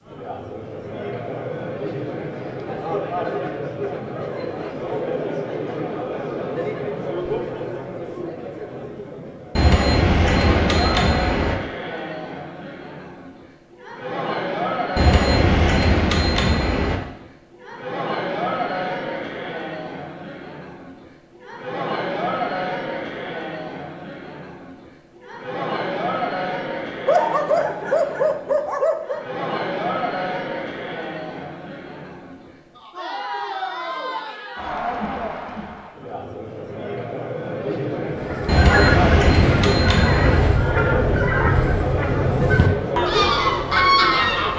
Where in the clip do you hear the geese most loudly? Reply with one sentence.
The volume of the geese peaks at 44 seconds.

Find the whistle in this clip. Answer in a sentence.
You can't hear the whistle here.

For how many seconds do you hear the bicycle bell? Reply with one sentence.
You can hear the bicycle bell for 6 seconds altogether.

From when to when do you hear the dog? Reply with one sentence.
The dog can be heard from 27.1 to 29.2 s.